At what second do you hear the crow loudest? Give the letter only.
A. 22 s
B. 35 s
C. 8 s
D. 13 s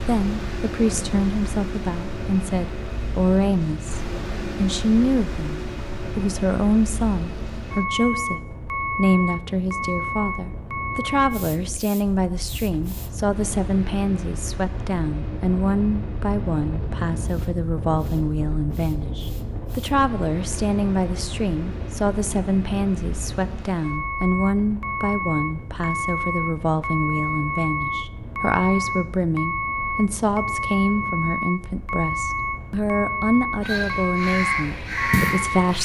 B.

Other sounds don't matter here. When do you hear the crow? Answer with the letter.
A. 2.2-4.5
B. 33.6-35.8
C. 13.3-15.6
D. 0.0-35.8
B.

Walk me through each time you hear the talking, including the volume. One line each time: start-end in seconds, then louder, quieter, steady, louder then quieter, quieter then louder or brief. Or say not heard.
0.0-35.8 steady.